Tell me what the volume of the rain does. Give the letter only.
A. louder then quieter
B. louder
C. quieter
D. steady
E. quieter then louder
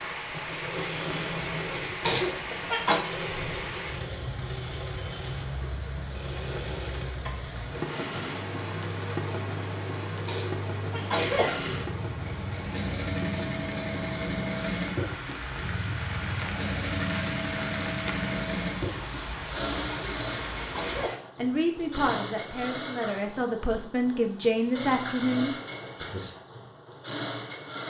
D.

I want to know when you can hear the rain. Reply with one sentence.
The rain can be heard from 0.0 to 21.1 s.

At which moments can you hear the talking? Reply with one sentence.
The talking can be heard from 21.4 to 26.4 s.